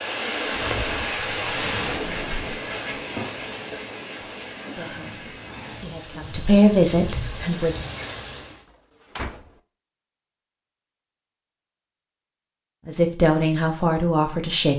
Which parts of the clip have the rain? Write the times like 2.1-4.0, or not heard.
0.0-8.7.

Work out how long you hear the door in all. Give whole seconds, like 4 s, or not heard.
3 s.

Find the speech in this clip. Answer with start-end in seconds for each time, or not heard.
4.6-7.8, 12.8-14.7.